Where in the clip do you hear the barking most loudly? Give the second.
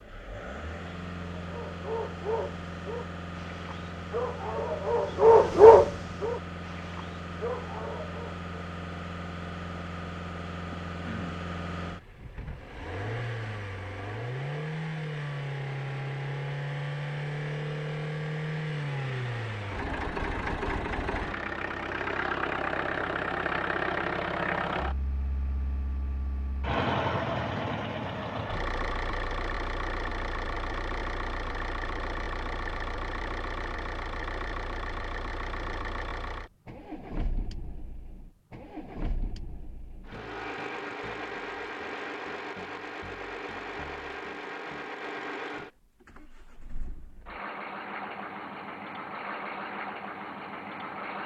6 s.